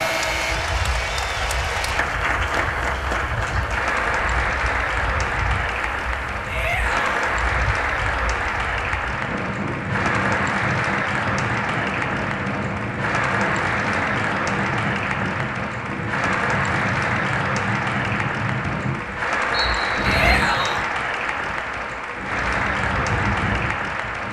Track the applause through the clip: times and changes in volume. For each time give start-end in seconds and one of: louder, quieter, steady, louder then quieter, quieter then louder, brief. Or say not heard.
0.0-24.2 steady.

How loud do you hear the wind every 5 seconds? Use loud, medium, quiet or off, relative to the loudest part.
medium, medium, loud, loud, loud.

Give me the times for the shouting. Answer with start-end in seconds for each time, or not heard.
6.5-7.0, 20.0-20.9.